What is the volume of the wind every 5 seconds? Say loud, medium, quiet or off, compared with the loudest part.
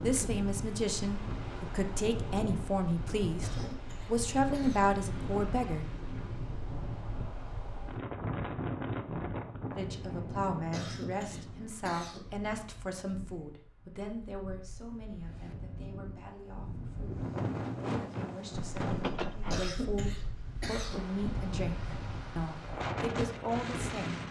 loud, loud, medium, loud, loud.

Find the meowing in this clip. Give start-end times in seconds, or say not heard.
18.7-19.6.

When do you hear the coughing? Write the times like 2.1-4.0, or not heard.
3.4-5.0, 10.7-12.3, 19.5-21.1.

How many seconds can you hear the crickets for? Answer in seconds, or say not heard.
not heard.